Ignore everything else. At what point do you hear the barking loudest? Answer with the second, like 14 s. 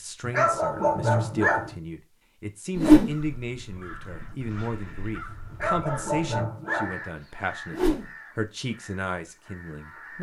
1 s.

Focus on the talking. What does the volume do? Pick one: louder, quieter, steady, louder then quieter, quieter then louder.
steady.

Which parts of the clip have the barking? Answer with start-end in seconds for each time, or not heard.
0.2-1.8, 5.5-7.0.